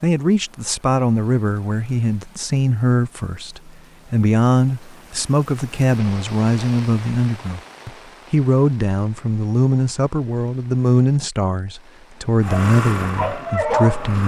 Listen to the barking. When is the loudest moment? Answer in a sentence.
The volume of the barking peaks at 14 seconds.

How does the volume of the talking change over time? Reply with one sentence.
The volume of the talking stays about the same.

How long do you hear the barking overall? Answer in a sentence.
You can hear the barking for 2 seconds altogether.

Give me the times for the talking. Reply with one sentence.
The talking can be heard from 0.0 to 14.2 s.